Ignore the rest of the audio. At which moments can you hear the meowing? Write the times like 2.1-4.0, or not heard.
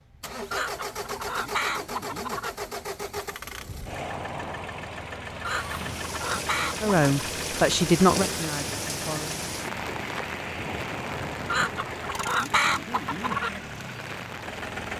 not heard.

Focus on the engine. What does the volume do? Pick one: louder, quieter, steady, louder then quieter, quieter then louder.
steady.